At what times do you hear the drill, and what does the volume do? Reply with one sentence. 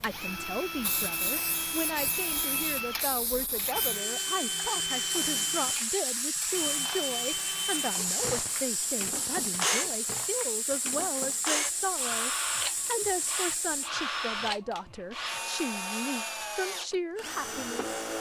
The drill can be heard from 0.0 to 18.1 s, at a steady volume.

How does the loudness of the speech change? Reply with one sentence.
The loudness of the speech stays about the same.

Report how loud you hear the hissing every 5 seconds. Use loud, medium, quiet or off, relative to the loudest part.
medium, loud, loud, off.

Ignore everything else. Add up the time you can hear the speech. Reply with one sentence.
The speech can be heard for 18 seconds in total.